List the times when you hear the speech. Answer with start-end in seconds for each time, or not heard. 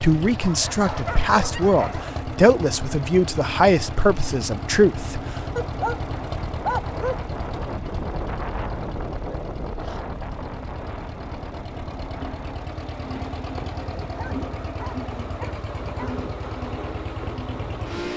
0.0-5.2.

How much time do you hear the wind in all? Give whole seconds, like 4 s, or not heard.
13 s.